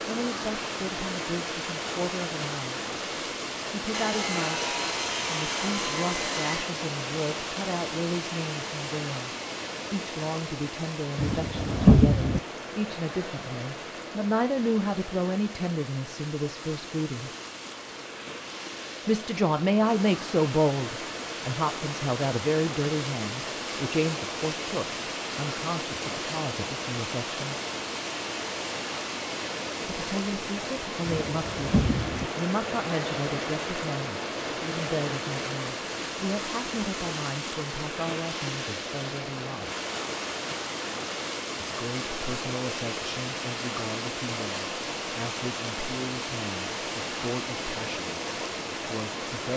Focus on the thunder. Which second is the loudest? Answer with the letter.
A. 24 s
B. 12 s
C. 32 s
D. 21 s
B.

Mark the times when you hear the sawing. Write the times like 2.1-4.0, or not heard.
3.9-6.8.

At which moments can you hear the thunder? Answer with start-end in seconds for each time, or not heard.
11.2-12.4, 31.1-32.3.